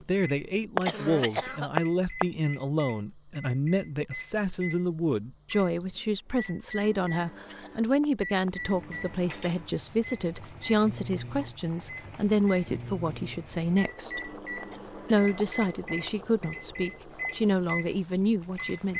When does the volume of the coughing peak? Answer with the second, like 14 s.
1 s.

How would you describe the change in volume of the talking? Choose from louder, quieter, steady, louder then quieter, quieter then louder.
steady.